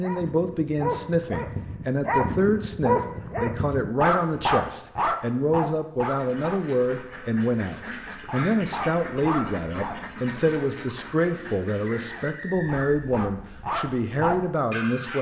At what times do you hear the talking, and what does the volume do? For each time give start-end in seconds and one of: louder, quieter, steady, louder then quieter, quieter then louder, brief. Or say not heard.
0.0-15.1 steady.